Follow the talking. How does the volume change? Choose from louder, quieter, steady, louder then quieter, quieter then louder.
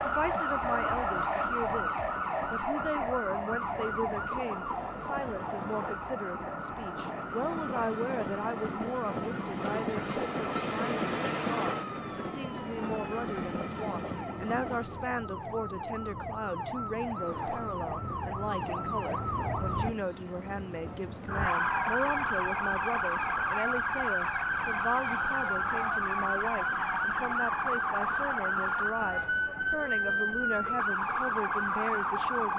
steady.